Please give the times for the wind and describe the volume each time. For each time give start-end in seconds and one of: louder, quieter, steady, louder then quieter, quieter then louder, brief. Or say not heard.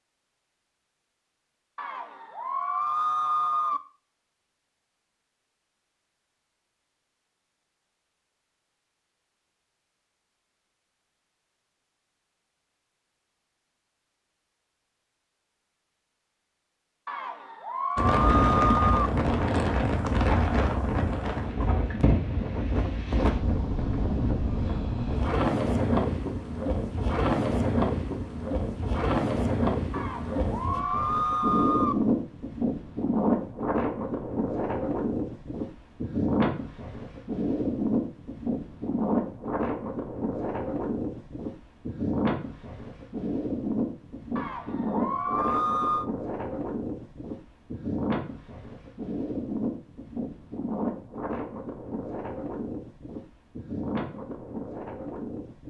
17.9-55.6 quieter.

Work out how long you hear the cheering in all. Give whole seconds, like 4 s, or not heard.
8 s.